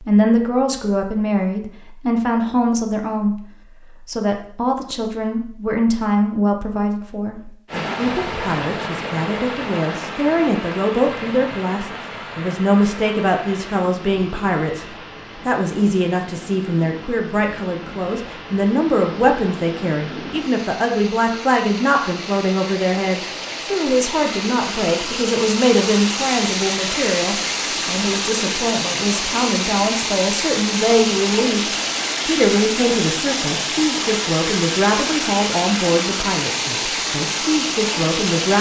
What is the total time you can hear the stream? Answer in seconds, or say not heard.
31 s.